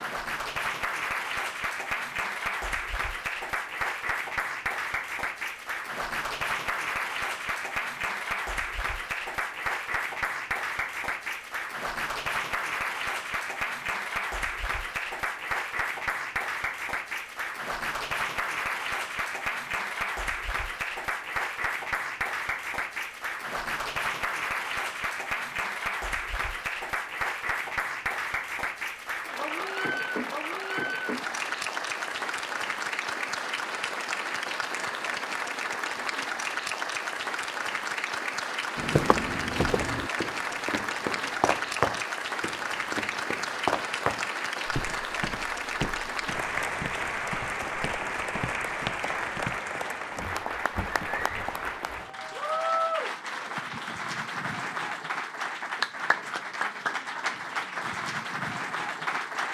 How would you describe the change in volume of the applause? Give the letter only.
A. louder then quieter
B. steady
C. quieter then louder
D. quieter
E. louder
B.